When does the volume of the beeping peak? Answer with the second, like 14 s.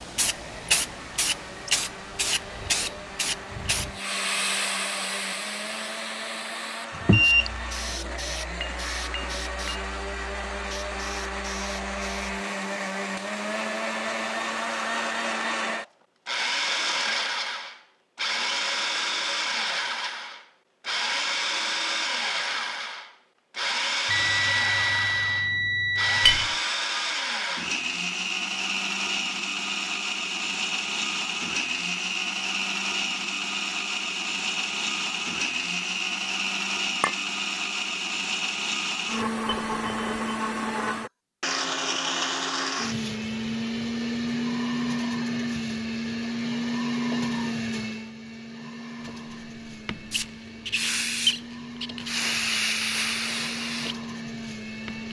7 s.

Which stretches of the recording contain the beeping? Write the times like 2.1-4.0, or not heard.
7.0-7.5, 24.1-26.5, 39.5-40.4.